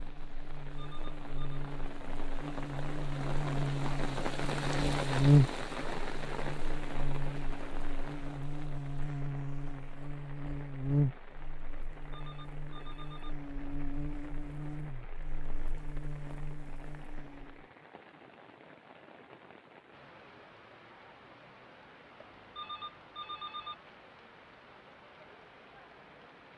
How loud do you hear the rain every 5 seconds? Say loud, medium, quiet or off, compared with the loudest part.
loud, loud, quiet, quiet, quiet, quiet.